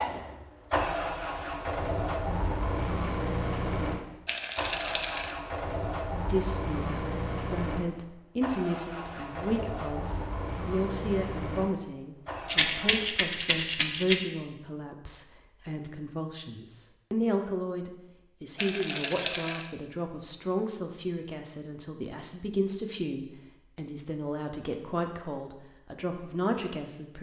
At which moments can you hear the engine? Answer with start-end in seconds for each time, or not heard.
0.0-13.1.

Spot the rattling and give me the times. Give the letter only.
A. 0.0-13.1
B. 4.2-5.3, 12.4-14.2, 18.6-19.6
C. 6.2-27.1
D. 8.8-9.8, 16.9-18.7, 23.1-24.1
B.